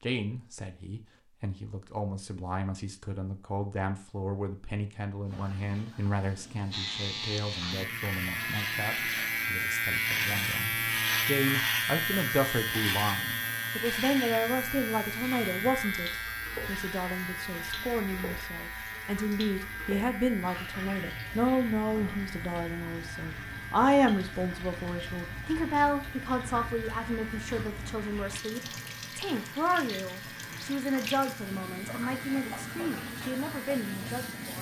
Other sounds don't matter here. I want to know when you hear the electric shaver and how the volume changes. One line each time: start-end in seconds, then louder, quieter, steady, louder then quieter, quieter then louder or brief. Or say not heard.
6.7-34.5 quieter.